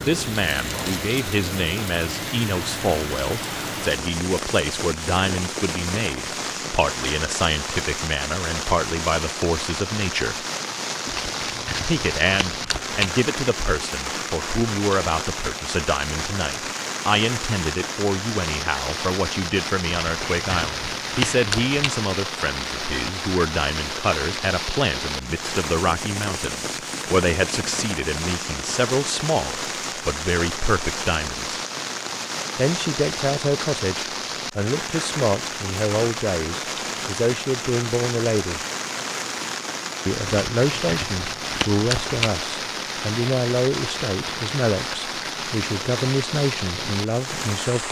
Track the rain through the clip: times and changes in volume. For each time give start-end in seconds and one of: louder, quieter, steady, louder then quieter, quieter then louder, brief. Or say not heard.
0.0-47.8 steady.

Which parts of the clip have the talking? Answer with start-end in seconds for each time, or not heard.
0.0-10.4, 11.8-31.6, 32.5-38.6, 40.0-47.8.